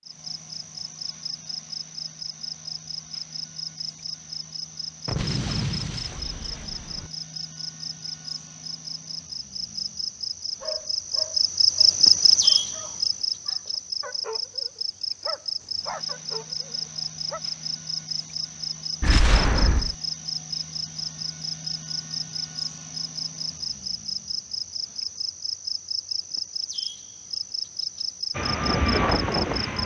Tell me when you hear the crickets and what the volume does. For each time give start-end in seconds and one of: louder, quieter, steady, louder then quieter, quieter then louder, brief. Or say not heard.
0.0-29.8 louder then quieter.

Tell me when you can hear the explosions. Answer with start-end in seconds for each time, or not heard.
5.0-7.1, 19.0-19.9.